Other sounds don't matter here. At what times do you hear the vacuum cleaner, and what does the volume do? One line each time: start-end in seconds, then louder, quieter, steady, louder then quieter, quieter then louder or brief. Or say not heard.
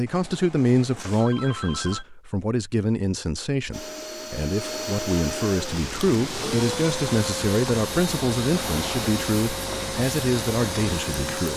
3.7-11.5 steady.